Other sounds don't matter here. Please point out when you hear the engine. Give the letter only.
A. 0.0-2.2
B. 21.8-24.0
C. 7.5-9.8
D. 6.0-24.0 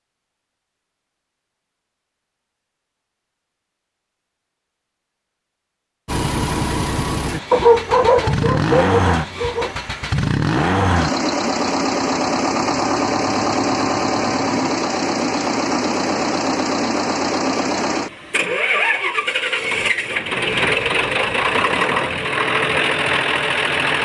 D.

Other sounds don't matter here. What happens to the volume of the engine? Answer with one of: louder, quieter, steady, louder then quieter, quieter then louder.
steady.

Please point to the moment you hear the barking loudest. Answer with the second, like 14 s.
8 s.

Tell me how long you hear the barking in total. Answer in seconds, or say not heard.
2 s.